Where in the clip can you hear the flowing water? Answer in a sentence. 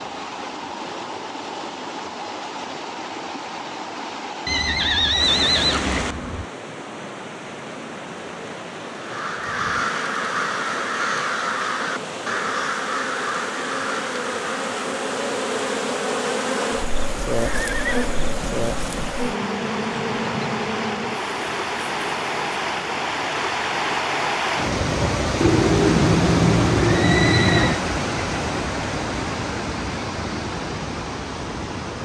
You can hear the flowing water from 0.0 to 31.9 s.